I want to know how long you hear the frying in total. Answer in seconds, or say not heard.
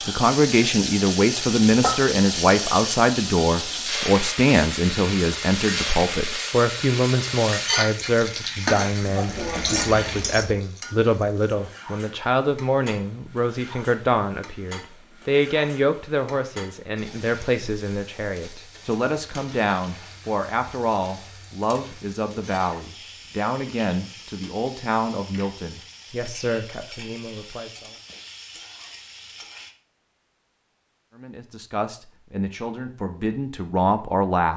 30 s.